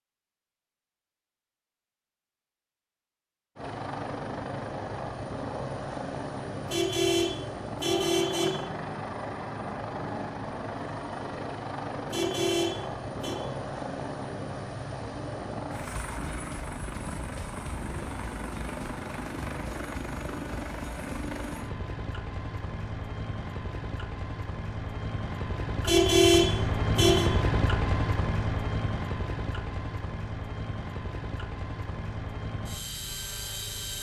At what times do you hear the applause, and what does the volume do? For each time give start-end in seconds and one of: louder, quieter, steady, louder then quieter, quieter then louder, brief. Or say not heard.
not heard.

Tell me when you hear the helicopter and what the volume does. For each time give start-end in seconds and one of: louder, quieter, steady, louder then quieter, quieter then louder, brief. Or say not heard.
3.5-33.9 steady.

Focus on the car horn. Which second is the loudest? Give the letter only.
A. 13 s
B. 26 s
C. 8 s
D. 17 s
B.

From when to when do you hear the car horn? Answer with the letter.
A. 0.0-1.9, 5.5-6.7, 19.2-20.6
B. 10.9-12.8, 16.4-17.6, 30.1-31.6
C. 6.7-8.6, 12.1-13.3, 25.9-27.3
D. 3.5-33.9
C.